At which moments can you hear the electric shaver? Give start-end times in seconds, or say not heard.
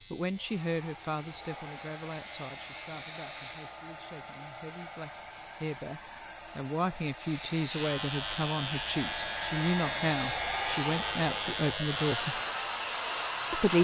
0.0-3.8, 7.2-12.4.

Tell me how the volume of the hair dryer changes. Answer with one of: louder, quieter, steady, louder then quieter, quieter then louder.
louder.